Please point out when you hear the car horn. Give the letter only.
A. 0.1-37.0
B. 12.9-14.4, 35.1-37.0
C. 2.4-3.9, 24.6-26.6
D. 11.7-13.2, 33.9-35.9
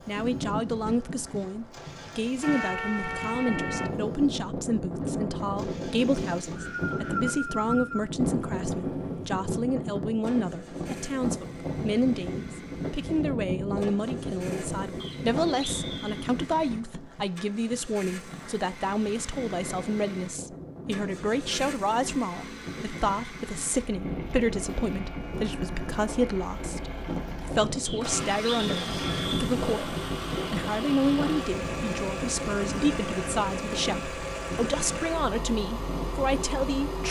C.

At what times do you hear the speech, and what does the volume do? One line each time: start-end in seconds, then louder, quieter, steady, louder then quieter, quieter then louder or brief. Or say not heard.
0.1-37.0 steady.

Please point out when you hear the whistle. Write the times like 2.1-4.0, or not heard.
6.2-8.1, 15.0-16.2, 27.9-29.4.